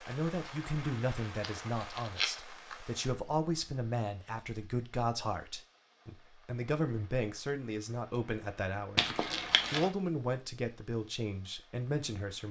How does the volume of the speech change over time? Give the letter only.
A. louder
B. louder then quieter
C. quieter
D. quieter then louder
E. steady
E.